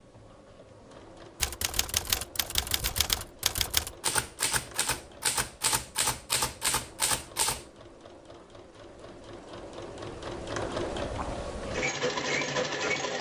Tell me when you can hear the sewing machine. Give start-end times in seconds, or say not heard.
0.0-13.1.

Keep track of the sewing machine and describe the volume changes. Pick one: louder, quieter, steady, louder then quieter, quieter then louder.
louder.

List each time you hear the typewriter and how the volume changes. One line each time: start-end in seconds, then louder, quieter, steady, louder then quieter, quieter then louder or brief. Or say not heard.
1.4-7.7 steady.